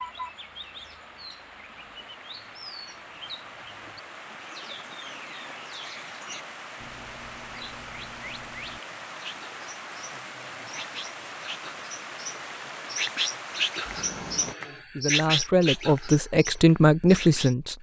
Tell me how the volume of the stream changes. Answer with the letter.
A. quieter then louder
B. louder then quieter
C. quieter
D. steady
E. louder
E.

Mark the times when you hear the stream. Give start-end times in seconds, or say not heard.
0.0-14.6.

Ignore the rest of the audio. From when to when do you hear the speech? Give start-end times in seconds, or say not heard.
14.7-17.7.